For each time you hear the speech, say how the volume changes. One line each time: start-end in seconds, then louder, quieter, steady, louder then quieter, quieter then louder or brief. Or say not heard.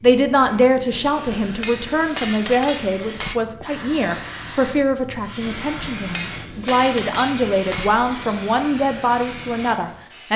0.0-10.3 steady.